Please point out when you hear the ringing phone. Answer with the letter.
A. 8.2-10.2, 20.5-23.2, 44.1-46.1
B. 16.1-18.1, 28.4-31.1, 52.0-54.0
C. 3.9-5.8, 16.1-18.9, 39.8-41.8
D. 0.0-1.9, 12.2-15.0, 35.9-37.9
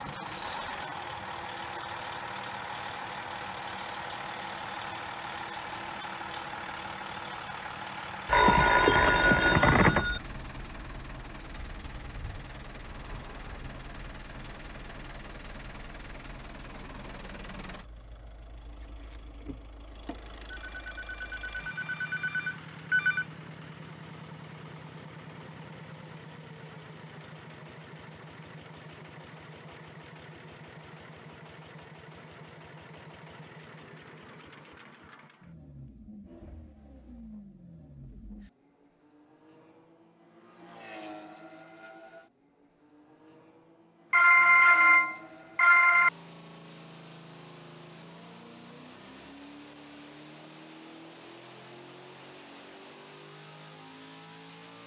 A.